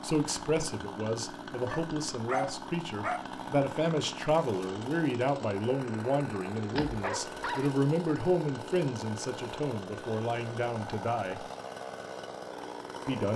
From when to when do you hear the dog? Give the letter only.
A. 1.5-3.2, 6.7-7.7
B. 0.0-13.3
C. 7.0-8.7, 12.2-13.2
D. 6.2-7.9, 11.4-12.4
A.